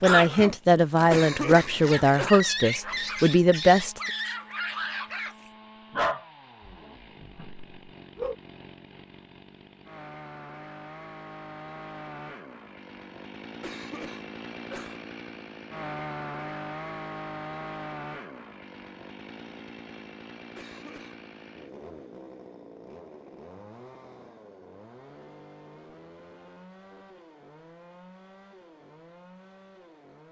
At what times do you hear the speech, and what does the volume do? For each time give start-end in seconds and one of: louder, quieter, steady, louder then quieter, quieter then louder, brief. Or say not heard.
0.0-4.0 steady.